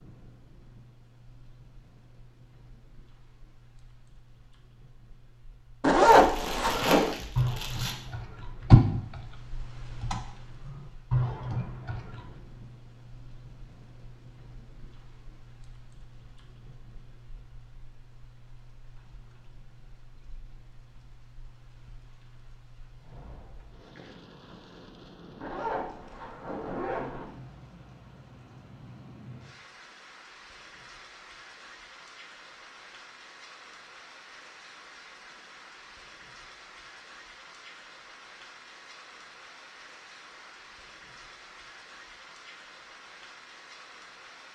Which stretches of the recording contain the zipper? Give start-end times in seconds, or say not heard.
5.8-7.2, 25.4-27.2.